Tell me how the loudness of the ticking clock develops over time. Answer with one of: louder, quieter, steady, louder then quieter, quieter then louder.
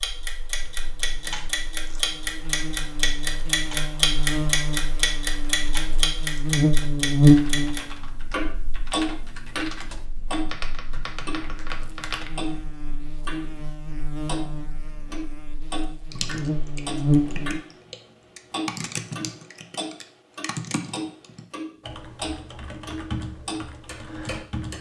quieter.